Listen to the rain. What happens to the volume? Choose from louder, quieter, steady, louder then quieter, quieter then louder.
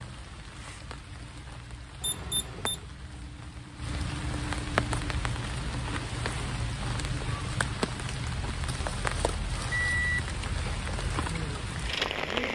louder.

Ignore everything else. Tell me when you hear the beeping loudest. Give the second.
10 s.